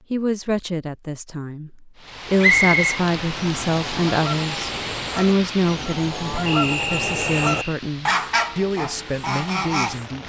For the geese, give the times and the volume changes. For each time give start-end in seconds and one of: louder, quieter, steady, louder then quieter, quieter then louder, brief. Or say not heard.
3.3-10.1 louder then quieter.